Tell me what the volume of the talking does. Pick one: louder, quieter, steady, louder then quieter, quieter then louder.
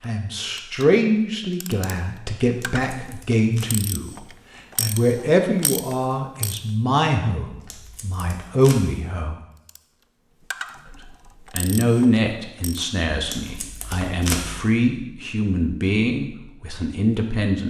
steady.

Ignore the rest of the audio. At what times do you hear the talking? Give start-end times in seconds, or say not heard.
0.0-9.4, 10.9-17.6.